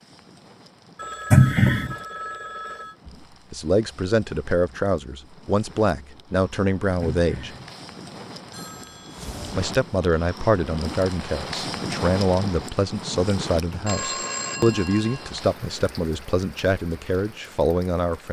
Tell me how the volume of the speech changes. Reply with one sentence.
The loudness of the speech stays about the same.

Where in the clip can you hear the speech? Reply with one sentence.
You can hear the speech from 3.0 to 7.5 s and from 9.6 to 18.2 s.